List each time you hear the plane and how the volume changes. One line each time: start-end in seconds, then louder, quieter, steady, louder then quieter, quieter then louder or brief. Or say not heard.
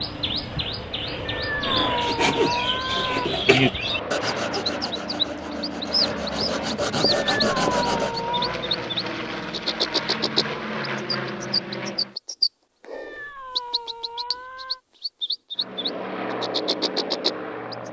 0.0-12.2 steady
15.6-17.8 brief.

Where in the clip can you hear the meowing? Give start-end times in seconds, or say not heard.
1.2-3.3, 7.2-8.6, 12.9-14.8.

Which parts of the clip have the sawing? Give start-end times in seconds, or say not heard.
2.0-8.2.